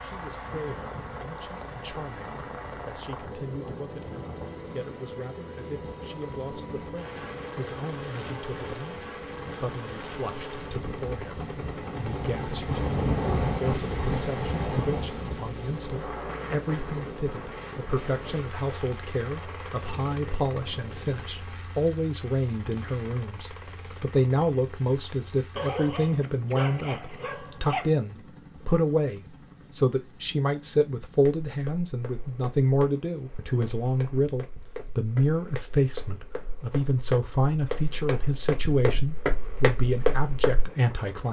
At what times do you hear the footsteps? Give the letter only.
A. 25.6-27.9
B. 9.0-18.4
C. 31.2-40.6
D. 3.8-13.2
C.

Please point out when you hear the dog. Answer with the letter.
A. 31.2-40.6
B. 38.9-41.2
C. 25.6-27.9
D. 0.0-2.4
C.